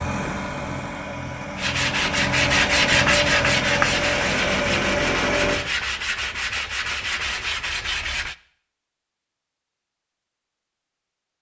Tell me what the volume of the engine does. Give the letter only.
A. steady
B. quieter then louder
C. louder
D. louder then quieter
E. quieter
C.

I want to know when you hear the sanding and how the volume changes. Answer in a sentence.
You can hear the sanding from 1.6 to 8.3 s, getting quieter.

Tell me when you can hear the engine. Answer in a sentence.
You can hear the engine from 0.0 to 5.6 s.